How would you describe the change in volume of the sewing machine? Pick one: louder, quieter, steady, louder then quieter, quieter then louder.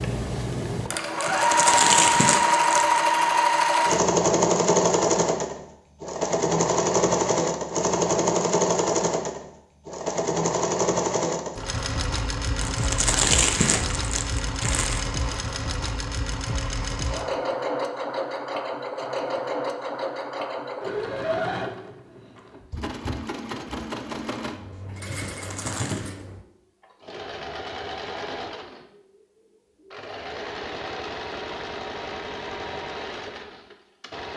quieter.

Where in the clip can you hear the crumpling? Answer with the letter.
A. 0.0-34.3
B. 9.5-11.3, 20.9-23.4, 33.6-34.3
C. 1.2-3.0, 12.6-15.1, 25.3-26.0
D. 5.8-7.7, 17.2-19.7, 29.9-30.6
C.